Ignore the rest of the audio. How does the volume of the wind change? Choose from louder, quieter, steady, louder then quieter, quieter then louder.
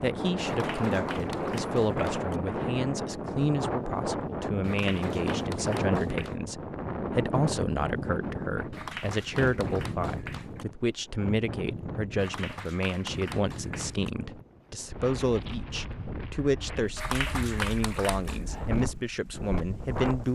quieter.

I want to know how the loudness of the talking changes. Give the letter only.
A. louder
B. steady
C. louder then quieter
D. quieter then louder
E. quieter
B.